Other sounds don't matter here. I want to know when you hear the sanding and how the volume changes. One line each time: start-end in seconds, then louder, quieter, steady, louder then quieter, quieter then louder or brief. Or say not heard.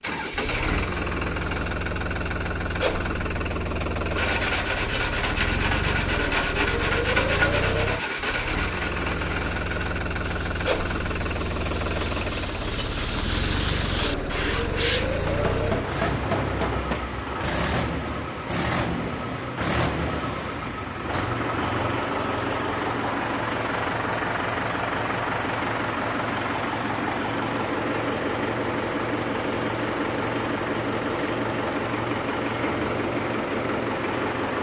4.1-15.2 quieter then louder.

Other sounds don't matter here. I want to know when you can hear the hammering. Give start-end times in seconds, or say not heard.
15.2-17.1.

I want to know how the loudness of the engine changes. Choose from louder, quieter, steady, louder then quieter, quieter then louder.
steady.